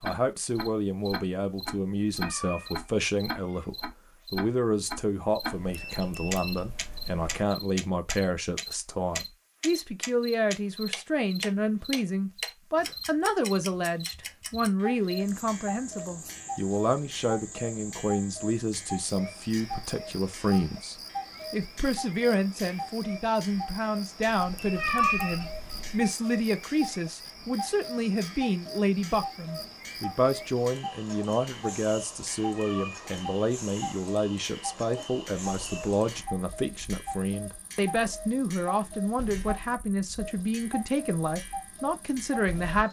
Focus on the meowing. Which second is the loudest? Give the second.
25 s.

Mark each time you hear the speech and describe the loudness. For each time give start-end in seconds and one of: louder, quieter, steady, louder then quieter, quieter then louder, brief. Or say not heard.
0.0-42.8 steady.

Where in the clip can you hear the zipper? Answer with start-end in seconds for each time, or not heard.
not heard.